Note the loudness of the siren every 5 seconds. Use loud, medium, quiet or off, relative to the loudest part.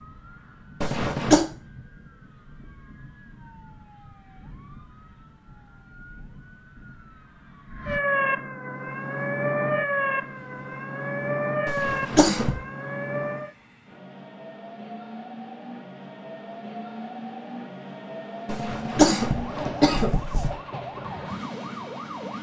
quiet, loud, loud, off, medium.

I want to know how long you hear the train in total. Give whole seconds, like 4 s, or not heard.
14 s.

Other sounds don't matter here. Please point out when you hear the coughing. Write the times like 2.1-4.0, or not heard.
0.8-1.4, 11.7-12.6, 18.4-20.5.